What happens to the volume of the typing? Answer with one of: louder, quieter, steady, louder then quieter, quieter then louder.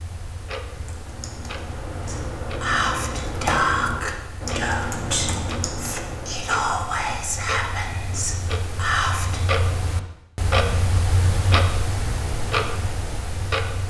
louder then quieter.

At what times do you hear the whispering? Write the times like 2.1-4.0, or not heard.
2.0-9.4.